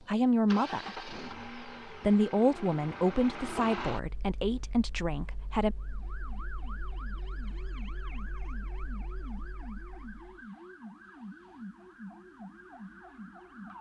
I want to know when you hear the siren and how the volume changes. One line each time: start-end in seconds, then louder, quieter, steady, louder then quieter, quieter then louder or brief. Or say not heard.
5.8-13.7 steady.